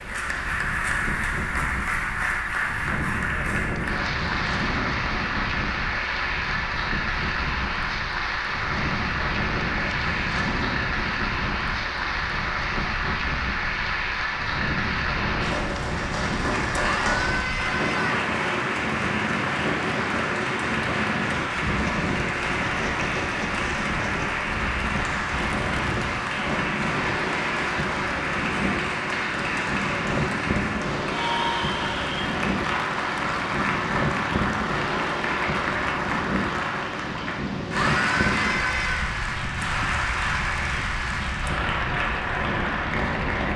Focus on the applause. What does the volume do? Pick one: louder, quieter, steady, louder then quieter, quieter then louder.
steady.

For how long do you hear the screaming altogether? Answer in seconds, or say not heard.
3 s.